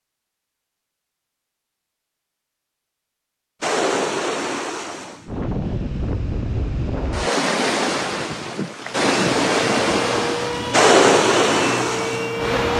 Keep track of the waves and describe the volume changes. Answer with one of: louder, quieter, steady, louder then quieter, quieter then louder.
louder.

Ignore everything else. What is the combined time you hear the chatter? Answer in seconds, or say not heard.
not heard.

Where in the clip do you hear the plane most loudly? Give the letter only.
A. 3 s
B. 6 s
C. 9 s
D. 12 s
D.